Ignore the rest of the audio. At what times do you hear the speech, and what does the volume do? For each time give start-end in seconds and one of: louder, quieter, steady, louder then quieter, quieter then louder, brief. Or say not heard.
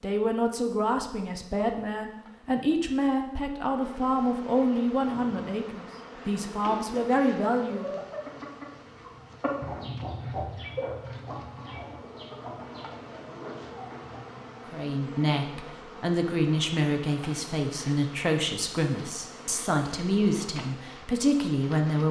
0.0-8.0 steady
14.7-22.0 steady.